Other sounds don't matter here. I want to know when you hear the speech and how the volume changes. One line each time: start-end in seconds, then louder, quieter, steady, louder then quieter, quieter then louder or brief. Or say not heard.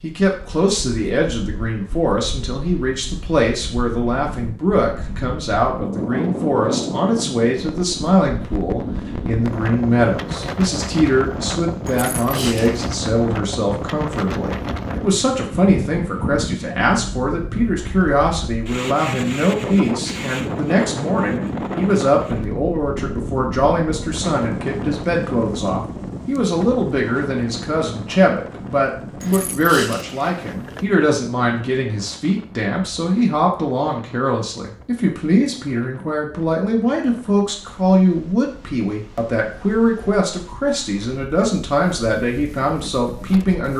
0.0-43.7 steady.